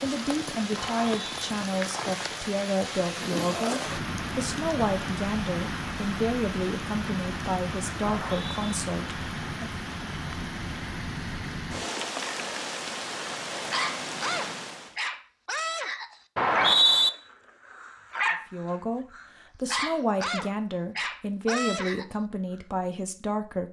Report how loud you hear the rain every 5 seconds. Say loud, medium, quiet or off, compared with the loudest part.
loud, loud, loud, off, off.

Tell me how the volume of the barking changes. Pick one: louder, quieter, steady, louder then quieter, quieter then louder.
steady.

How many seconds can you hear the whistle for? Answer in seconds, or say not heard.
2 s.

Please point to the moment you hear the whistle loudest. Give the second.
17 s.